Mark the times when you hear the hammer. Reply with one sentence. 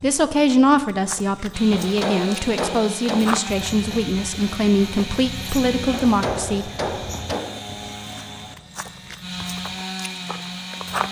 You can hear the hammer from 1.7 to 3.4 s and from 5.9 to 7.6 s.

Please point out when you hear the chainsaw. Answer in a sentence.
The chainsaw can be heard from 1.5 to 11.0 s.